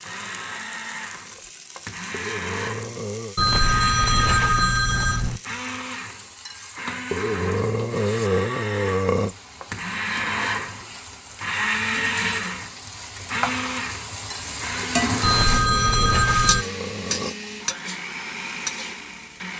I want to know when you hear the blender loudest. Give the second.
12 s.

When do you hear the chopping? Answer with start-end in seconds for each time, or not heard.
not heard.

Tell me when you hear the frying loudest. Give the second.
15 s.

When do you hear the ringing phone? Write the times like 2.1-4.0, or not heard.
3.4-5.4, 15.2-16.6.